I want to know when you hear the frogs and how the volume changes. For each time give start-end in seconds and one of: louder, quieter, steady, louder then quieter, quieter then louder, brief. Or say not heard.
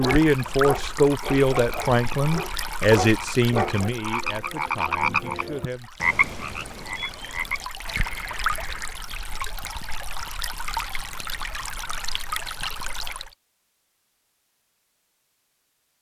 0.1-9.1 louder then quieter.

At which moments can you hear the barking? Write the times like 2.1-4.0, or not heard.
0.0-3.9.